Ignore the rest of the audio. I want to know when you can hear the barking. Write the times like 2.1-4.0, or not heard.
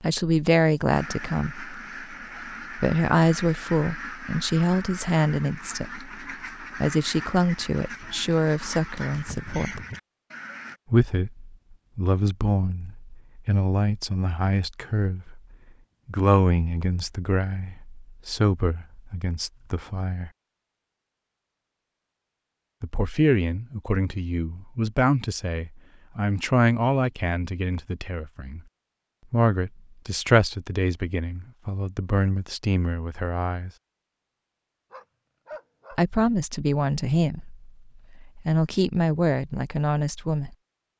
34.9-36.0.